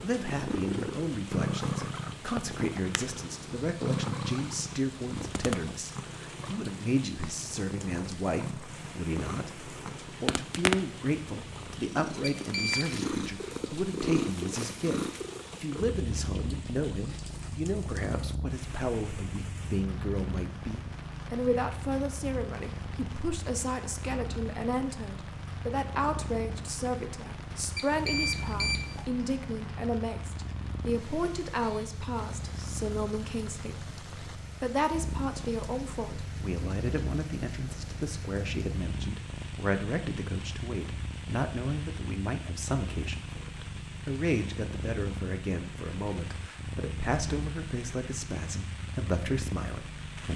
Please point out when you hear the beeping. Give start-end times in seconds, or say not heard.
12.2-12.9, 27.8-29.1.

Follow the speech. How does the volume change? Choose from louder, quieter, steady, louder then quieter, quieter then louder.
steady.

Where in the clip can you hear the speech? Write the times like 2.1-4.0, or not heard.
0.0-50.3.